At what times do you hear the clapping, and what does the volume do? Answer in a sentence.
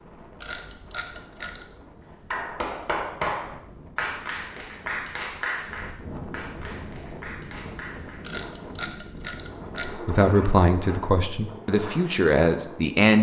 The clapping can be heard from 2.3 to 8.2 s, getting quieter.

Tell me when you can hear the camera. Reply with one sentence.
You can hear the camera from 0.4 to 1.6 s and from 8.2 to 10.0 s.